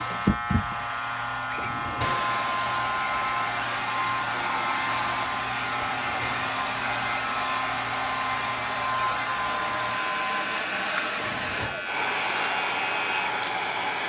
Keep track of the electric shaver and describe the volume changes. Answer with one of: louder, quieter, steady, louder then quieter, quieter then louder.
steady.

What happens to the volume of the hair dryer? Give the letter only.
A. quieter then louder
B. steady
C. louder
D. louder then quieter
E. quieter
B.